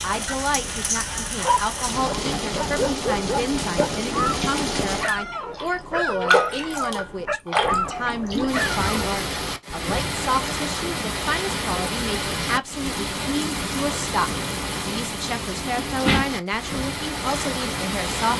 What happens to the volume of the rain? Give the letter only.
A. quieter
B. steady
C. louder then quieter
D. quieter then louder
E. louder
B.